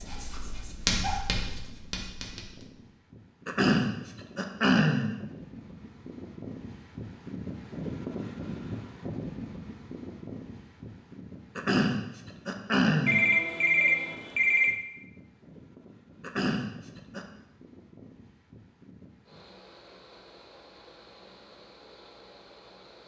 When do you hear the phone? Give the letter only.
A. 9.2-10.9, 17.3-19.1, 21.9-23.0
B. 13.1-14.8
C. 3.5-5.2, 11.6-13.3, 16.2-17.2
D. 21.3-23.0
B.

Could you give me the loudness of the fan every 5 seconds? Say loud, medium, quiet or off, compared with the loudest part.
quiet, loud, medium, quiet, quiet.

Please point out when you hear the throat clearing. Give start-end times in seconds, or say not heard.
3.5-5.2, 11.6-13.3, 16.2-17.2.